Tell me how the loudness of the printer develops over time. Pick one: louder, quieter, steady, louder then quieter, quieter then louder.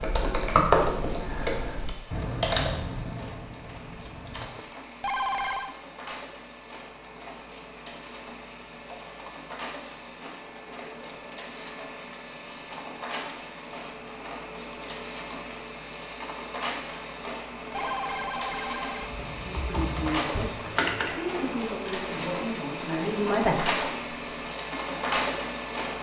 louder.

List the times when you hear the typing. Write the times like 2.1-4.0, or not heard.
0.0-4.5, 19.0-21.1.